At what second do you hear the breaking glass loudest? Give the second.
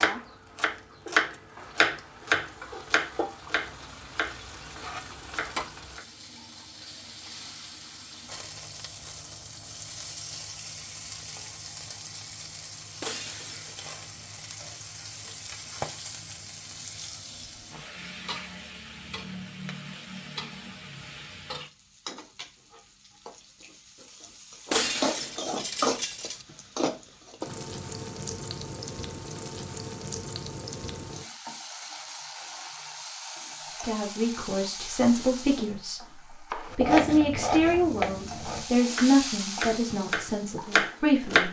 25 s.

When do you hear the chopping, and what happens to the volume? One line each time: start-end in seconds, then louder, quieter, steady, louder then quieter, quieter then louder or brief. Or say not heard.
0.0-6.0 quieter
36.5-41.4 quieter then louder.